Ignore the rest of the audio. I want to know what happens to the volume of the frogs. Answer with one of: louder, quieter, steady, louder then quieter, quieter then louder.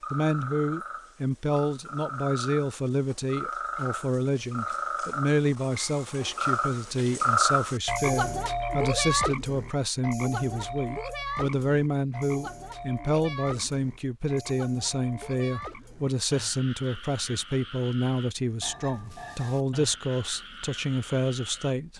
louder then quieter.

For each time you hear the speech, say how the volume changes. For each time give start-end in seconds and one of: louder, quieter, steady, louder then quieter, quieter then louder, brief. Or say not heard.
0.1-21.9 steady.